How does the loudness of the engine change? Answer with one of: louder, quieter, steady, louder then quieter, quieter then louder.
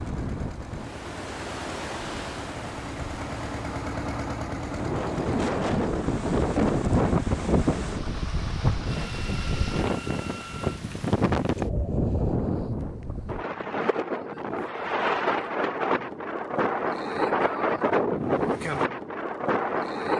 louder then quieter.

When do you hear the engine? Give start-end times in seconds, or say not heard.
0.0-10.8.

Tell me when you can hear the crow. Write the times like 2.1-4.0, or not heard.
not heard.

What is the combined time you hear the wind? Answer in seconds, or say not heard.
20 s.